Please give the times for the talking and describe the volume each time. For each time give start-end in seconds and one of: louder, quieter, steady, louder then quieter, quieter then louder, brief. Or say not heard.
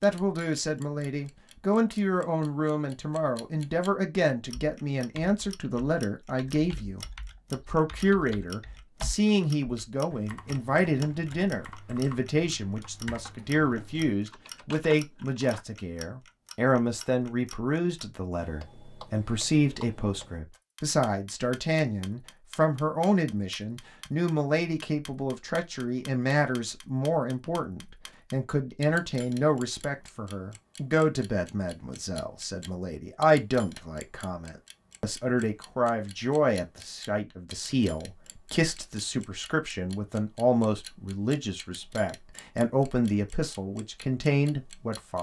0.0-45.1 steady.